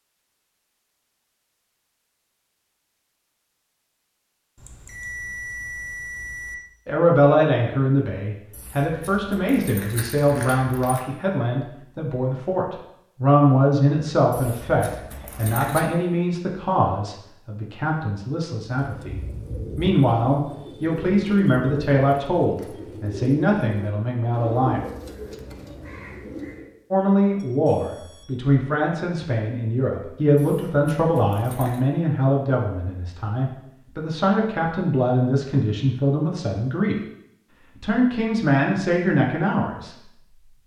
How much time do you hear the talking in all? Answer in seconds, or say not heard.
30 s.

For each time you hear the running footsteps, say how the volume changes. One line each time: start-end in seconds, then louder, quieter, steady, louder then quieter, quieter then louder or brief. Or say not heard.
not heard.